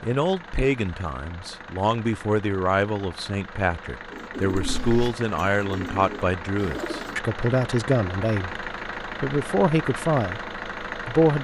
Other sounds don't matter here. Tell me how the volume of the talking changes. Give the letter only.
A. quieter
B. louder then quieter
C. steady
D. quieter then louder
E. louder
C.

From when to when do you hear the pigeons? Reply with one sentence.
You can hear the pigeons from 4.1 to 7.2 s.